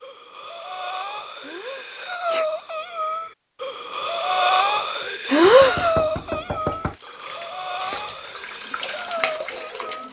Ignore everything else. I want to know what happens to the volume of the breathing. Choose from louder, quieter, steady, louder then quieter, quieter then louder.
louder then quieter.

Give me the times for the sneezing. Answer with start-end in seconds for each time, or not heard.
1.4-2.5, 5.3-6.0.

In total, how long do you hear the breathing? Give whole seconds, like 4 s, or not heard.
10 s.